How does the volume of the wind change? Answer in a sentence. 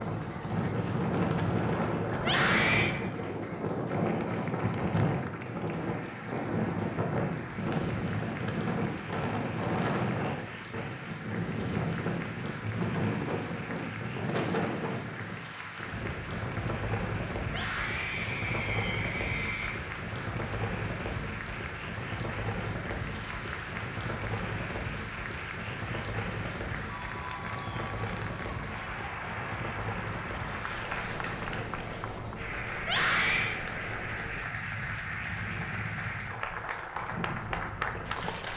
The loudness of the wind goes down.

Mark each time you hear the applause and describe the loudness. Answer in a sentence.
You can hear the applause from 0.0 to 38.5 s, getting louder.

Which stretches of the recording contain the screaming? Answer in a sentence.
The screaming can be heard from 2.2 to 3.0 s, from 17.4 to 19.8 s and from 32.8 to 33.6 s.